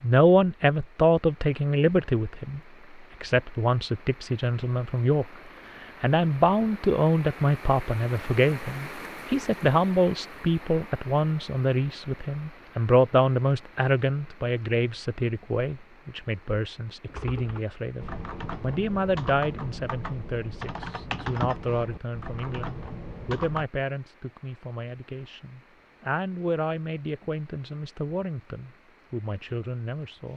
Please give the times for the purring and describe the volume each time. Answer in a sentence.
You can't hear the purring here.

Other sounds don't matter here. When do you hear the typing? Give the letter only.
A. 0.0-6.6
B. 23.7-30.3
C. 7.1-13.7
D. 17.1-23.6
D.